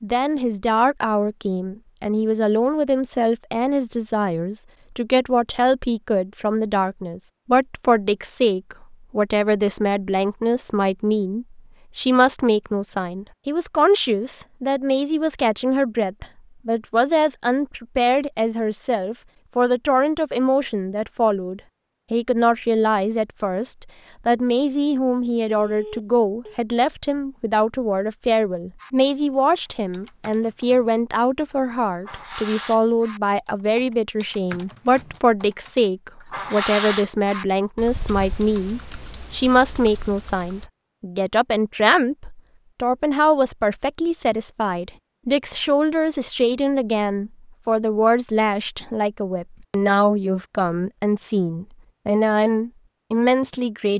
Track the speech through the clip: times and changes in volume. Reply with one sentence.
You can hear the speech from 0.0 to 53.9 s, at a steady volume.